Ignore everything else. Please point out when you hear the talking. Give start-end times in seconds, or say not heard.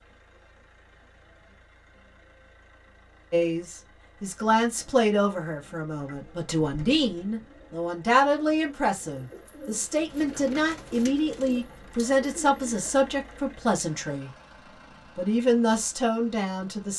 3.3-14.3, 15.2-16.9.